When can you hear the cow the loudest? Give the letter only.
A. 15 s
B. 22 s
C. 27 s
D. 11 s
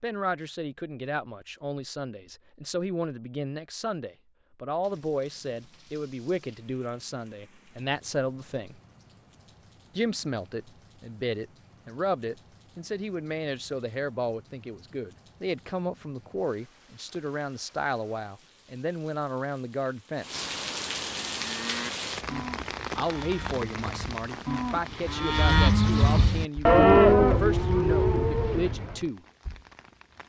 C.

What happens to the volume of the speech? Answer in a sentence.
The loudness of the speech stays about the same.